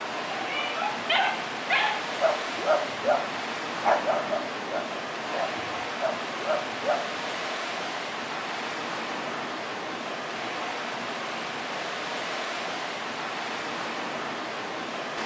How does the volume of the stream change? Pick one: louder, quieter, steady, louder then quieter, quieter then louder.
steady.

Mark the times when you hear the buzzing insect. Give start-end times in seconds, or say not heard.
not heard.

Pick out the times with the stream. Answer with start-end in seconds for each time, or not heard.
0.0-15.2.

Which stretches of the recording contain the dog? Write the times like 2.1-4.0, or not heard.
0.3-7.1.